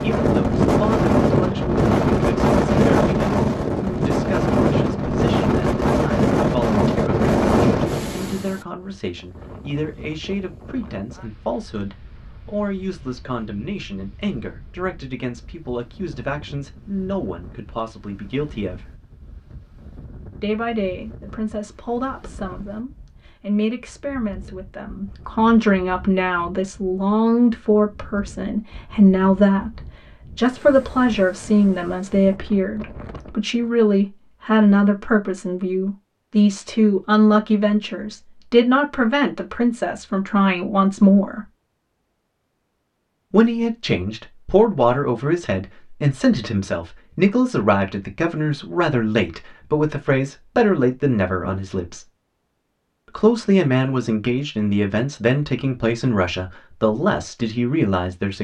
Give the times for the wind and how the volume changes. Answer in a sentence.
You can hear the wind from 0.0 to 33.8 s, getting quieter.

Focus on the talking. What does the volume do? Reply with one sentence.
The volume of the talking goes up.